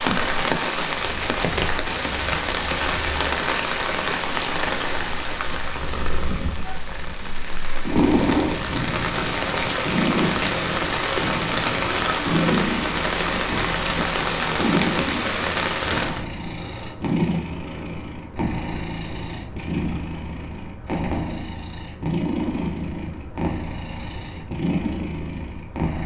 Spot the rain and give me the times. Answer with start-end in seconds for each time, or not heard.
0.0-16.2.